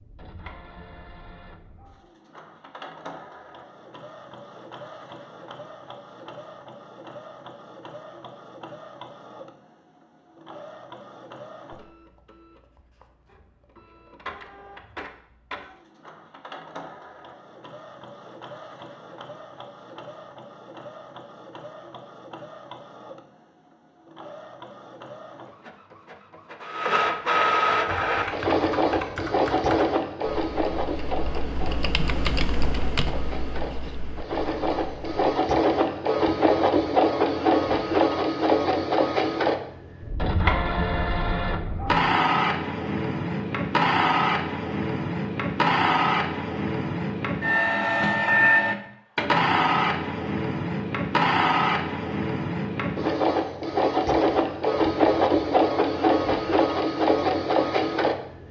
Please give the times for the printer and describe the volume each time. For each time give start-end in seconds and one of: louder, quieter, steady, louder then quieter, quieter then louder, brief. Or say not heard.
0.0-58.4 louder.